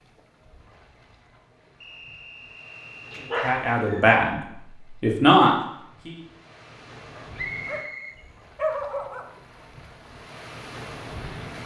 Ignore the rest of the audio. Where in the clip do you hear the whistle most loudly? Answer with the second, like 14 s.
8 s.